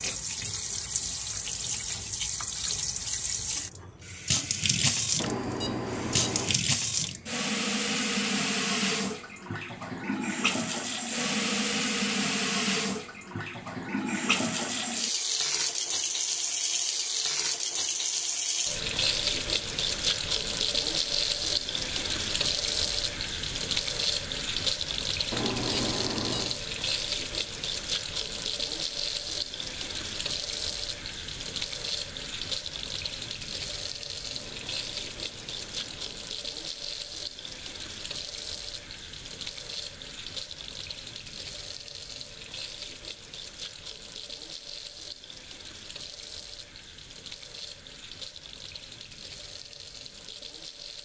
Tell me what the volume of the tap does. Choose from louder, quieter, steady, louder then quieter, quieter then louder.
quieter.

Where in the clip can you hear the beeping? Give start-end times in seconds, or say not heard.
5.2-6.6, 25.3-26.6, 34.4-36.2.